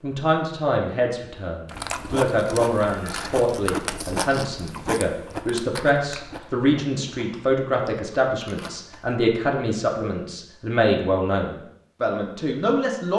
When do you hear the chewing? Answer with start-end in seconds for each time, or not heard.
1.6-9.2.